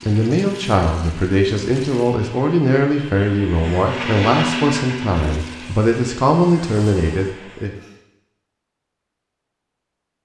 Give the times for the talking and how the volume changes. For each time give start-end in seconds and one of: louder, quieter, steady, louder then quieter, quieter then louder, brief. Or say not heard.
0.0-7.7 steady.